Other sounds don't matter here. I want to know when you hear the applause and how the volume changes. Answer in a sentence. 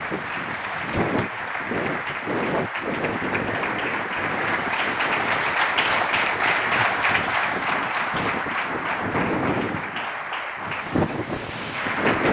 You can hear the applause from 0.0 to 12.2 s, getting louder then quieter.